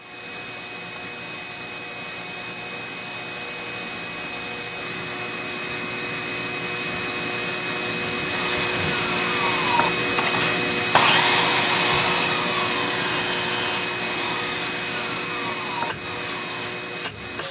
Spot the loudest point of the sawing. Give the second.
11 s.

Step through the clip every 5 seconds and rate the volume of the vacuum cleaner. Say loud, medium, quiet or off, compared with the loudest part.
medium, loud, loud, medium.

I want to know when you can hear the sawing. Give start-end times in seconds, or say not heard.
8.3-16.8.